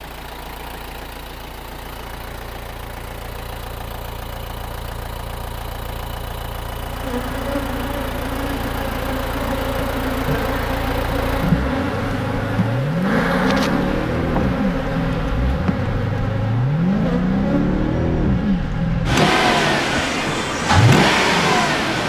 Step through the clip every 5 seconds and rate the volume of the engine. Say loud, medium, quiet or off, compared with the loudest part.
quiet, quiet, medium, loud, loud.